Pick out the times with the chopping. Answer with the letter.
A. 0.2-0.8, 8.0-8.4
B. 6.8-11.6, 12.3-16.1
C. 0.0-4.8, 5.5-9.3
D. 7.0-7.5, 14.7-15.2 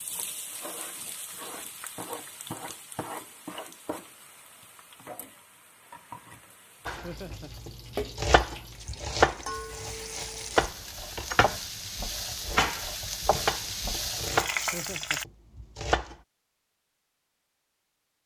B.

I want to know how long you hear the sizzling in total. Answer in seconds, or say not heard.
15 s.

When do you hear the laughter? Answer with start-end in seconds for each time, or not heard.
7.0-7.5, 14.7-15.2.